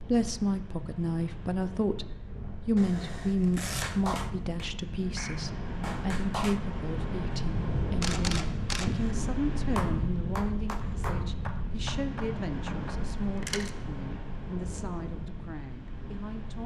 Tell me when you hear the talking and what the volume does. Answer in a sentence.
The talking can be heard from 0.0 to 16.6 s, getting quieter.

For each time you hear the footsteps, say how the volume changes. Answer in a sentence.
You can't hear the footsteps here.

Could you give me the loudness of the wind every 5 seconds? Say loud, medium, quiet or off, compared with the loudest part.
medium, loud, loud, medium.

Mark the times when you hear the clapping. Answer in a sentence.
The clapping can be heard from 3.8 to 6.6 s and from 9.8 to 12.9 s.